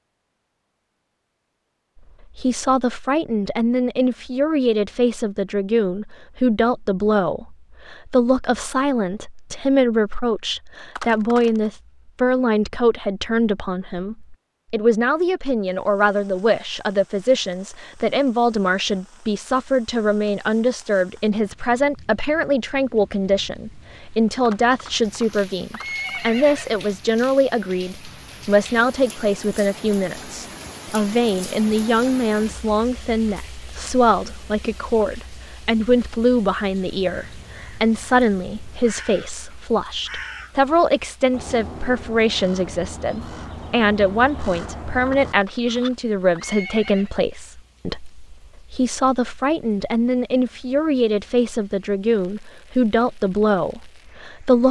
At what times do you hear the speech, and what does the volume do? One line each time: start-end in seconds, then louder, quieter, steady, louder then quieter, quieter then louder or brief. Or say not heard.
2.4-54.6 steady.